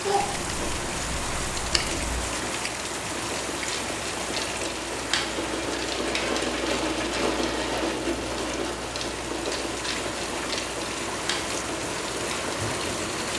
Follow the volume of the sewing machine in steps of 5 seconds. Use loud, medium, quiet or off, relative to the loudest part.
medium, loud, medium.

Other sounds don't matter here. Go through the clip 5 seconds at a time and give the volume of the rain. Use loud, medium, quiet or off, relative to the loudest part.
loud, medium, loud.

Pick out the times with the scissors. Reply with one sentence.
The scissors can be heard from 0.2 to 2.2 s.